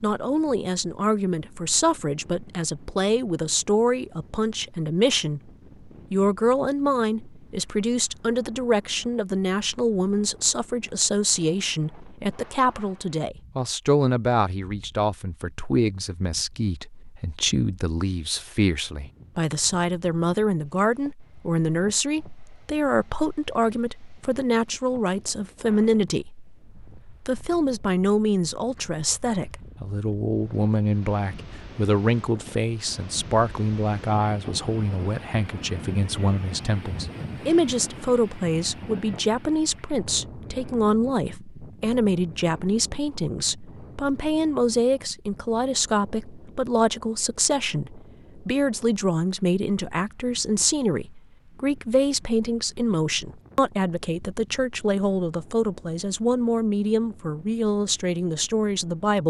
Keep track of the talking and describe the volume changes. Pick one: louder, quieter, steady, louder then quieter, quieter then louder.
steady.